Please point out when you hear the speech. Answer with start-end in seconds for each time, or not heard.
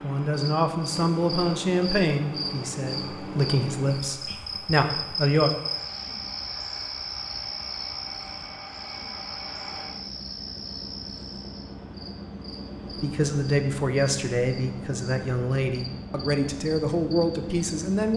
0.0-5.5, 12.9-18.1.